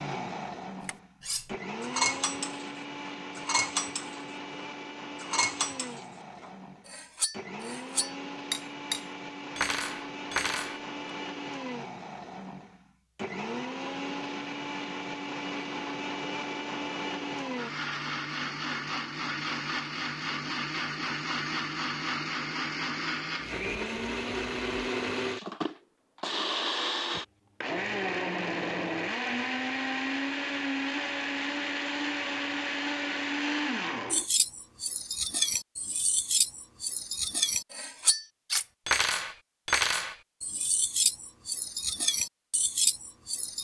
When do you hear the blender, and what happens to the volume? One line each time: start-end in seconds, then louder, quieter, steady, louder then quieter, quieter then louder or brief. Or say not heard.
0.0-34.2 louder.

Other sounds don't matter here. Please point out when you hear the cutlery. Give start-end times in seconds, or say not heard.
0.8-10.8, 34.1-43.6.